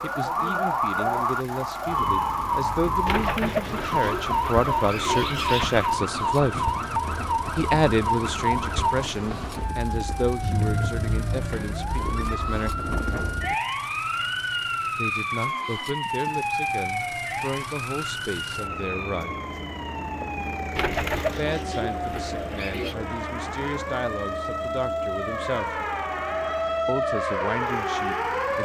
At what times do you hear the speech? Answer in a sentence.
The speech can be heard from 0.0 to 6.7 s, from 7.5 to 12.8 s, from 14.9 to 19.4 s, from 21.2 to 25.8 s and from 26.9 to 28.6 s.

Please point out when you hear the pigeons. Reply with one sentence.
The pigeons can be heard from 3.0 to 5.9 s and from 20.8 to 22.9 s.